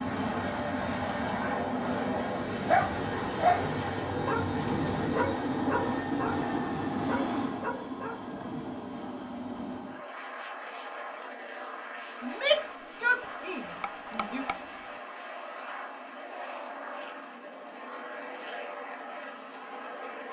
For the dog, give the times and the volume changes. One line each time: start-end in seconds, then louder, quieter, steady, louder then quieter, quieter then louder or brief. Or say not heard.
2.6-8.8 quieter.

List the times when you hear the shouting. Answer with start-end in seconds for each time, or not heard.
12.2-14.4.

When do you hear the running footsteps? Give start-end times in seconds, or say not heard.
not heard.